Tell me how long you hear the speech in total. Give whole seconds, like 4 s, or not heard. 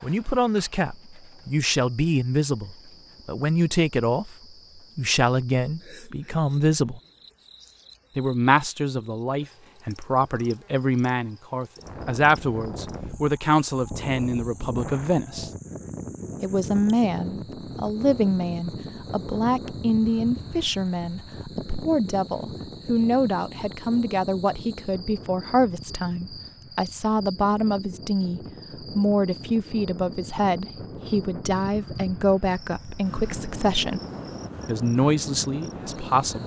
33 s.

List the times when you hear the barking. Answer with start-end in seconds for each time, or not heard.
not heard.